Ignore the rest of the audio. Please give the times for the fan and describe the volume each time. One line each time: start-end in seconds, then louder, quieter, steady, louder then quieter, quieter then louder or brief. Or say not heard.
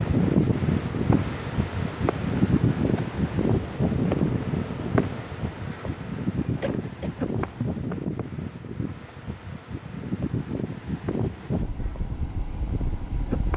0.0-13.5 quieter.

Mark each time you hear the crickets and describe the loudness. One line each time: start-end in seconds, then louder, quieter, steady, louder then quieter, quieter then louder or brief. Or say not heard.
0.0-13.5 quieter.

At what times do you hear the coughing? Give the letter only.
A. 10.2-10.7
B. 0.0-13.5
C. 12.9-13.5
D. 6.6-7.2
D.